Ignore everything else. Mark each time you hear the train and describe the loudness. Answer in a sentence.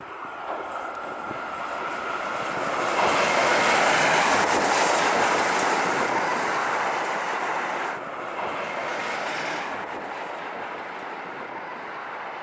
You can hear the train from 0.0 to 12.3 s, getting louder then quieter.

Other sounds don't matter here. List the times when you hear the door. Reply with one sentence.
You can hear the door from 8.7 to 9.8 s.